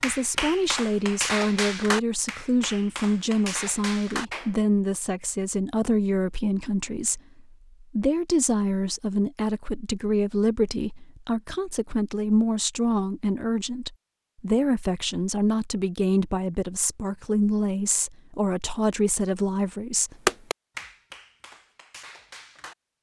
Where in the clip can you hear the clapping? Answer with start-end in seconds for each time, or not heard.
0.0-4.5, 20.2-22.8.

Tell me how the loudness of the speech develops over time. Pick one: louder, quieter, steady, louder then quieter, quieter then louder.
steady.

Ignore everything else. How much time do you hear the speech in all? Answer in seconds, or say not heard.
20 s.